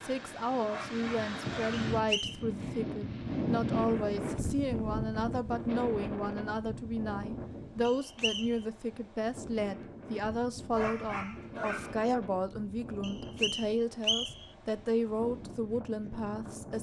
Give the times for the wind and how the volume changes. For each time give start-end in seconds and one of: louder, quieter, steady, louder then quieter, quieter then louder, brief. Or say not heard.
0.0-16.7 quieter.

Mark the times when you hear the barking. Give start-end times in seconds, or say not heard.
0.7-1.8, 10.7-12.0.